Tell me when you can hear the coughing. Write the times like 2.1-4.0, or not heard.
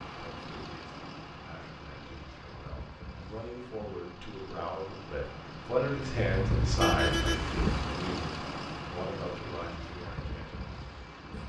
not heard.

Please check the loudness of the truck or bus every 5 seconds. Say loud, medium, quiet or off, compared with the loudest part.
medium, loud, medium.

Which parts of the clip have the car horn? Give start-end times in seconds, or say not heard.
6.2-7.6.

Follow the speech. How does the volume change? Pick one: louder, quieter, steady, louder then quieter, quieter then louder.
louder then quieter.